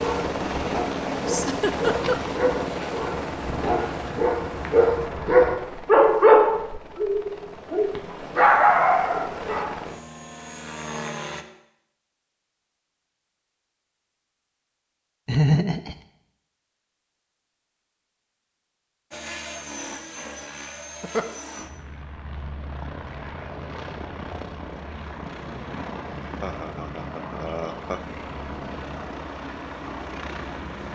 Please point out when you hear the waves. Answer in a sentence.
You can't hear the waves here.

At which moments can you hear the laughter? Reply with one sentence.
The laughter can be heard from 1.2 to 2.2 s, from 15.2 to 15.9 s and from 26.4 to 28.0 s.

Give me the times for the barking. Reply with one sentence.
You can hear the barking from 0.0 to 9.8 s.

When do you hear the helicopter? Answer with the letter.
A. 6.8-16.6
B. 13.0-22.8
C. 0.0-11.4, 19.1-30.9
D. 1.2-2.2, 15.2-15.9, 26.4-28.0
C.